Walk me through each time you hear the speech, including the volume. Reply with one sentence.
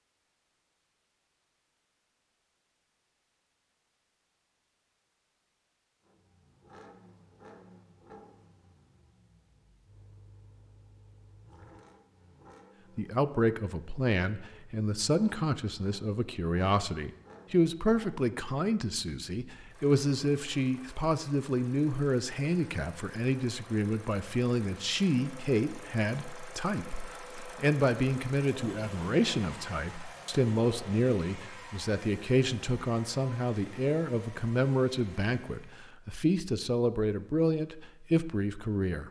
The speech can be heard from 12.9 to 39.0 s, at a steady volume.